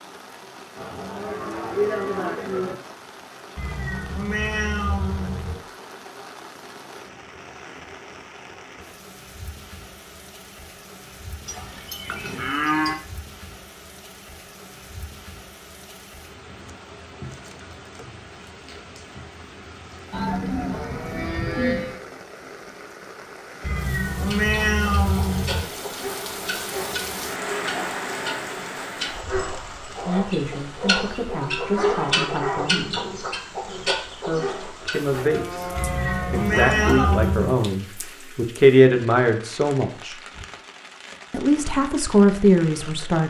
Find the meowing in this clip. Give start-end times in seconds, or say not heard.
3.5-5.6, 23.6-25.6, 35.8-37.6.